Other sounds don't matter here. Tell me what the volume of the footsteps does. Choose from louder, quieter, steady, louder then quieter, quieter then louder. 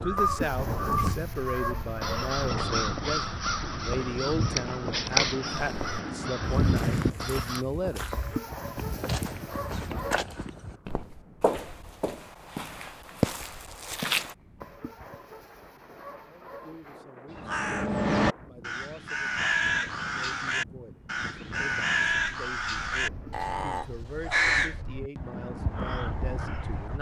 louder.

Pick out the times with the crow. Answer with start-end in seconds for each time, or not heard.
0.0-7.7, 17.3-26.9.